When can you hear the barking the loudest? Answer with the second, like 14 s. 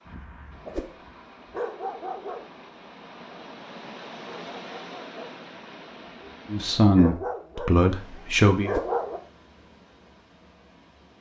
9 s.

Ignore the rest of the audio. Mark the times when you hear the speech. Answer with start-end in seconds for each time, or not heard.
6.5-8.7.